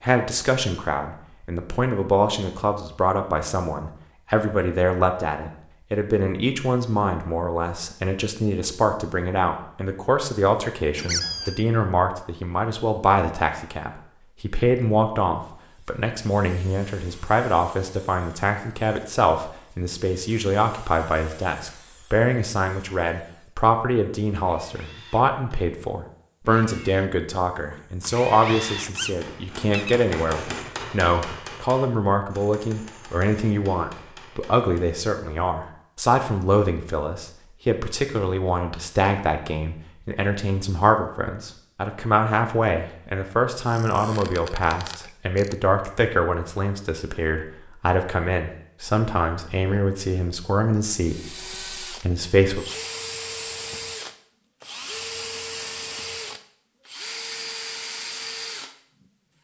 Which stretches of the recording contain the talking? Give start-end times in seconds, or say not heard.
0.0-52.6.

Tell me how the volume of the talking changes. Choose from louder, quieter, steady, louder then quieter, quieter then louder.
steady.